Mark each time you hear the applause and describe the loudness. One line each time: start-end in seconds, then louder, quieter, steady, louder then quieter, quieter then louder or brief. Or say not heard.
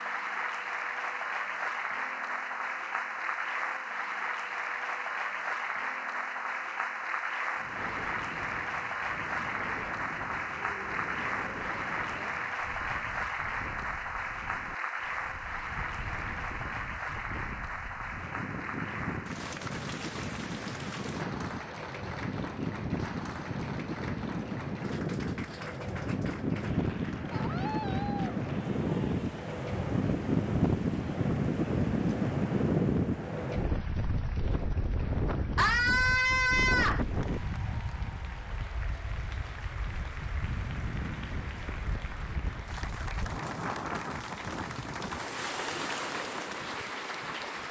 0.0-47.6 quieter then louder.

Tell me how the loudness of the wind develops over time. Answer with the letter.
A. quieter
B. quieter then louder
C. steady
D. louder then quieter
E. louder
D.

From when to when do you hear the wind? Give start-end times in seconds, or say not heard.
7.5-47.6.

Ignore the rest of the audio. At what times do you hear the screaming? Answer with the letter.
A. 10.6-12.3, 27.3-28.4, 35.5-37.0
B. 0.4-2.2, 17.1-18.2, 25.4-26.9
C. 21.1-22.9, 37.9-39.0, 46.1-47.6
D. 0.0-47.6
A.